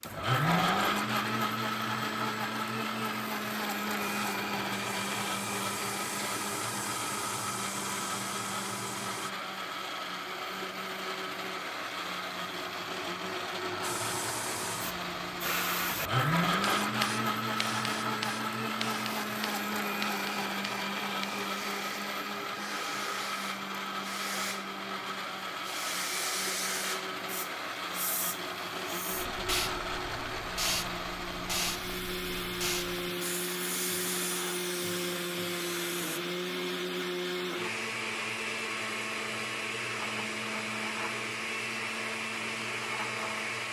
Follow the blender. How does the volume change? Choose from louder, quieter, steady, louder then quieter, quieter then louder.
steady.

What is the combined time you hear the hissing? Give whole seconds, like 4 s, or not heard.
28 s.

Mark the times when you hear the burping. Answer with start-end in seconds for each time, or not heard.
0.5-0.9.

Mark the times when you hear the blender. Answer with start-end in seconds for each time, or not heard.
0.0-43.6.